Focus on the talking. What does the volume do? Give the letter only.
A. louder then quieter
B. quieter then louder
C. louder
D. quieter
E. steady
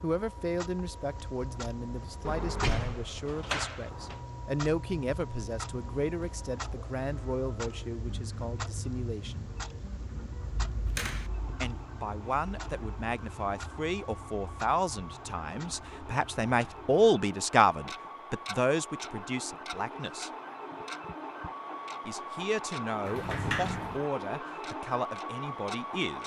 A.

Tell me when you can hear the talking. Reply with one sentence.
You can hear the talking from 0.0 to 9.5 s, from 11.6 to 20.3 s and from 22.1 to 26.2 s.